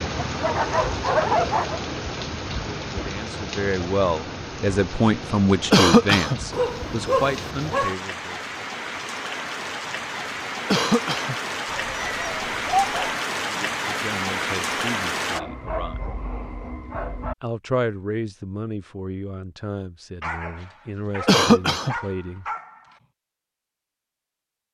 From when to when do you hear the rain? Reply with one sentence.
You can hear the rain from 0.0 to 15.4 s.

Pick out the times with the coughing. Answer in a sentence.
You can hear the coughing from 5.7 to 6.4 s, from 10.7 to 11.3 s and from 21.2 to 21.9 s.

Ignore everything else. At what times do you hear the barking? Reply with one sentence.
The barking can be heard from 0.1 to 1.8 s, from 6.5 to 8.0 s, from 11.7 to 13.2 s, from 15.3 to 17.4 s and from 20.2 to 23.0 s.